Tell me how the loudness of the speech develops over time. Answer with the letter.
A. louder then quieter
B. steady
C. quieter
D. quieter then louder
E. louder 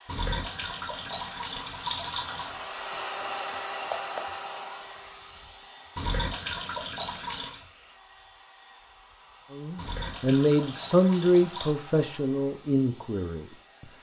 C.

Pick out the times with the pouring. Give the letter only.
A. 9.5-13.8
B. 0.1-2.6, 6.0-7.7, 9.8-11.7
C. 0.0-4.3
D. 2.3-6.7
B.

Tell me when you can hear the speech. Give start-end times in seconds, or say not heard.
9.5-13.8.